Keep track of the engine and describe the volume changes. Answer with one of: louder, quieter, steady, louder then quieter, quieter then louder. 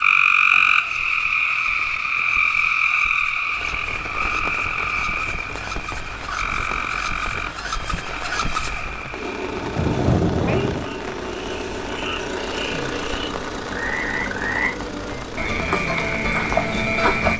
louder then quieter.